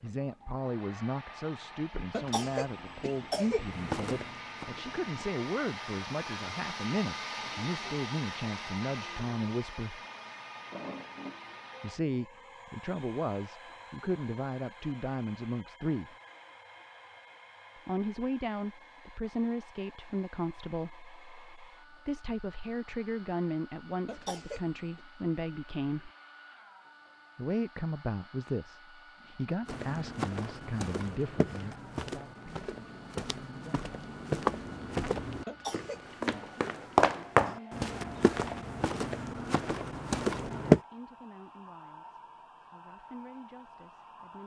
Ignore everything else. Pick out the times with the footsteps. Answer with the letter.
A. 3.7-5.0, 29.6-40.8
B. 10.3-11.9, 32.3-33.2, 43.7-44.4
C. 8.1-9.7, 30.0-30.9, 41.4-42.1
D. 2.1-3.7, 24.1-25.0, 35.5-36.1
A.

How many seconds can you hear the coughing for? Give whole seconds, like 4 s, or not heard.
3 s.